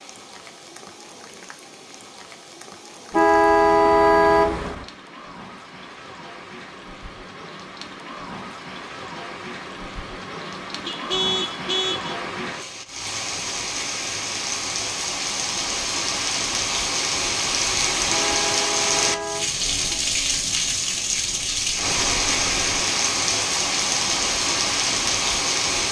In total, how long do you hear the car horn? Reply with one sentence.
You can hear the car horn for 5 seconds altogether.